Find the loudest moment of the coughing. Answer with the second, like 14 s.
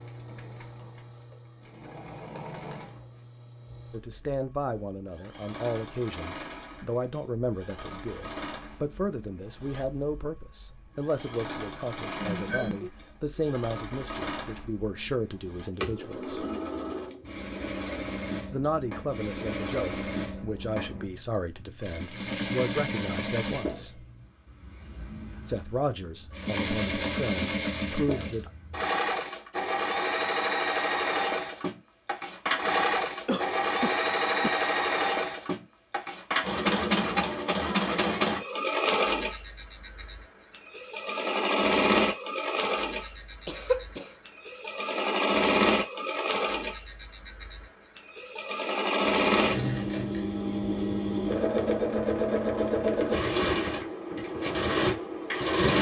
44 s.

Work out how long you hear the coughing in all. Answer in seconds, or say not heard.
3 s.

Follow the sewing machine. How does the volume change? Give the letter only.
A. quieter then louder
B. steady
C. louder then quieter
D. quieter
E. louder
E.